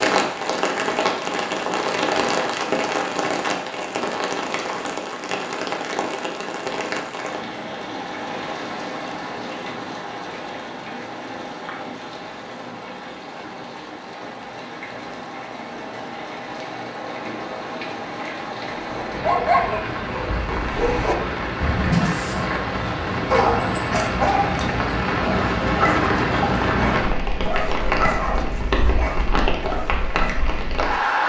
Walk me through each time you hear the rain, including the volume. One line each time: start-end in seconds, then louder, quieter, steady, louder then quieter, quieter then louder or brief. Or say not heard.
0.0-31.2 quieter then louder.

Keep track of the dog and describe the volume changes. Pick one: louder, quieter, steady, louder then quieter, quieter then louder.
quieter.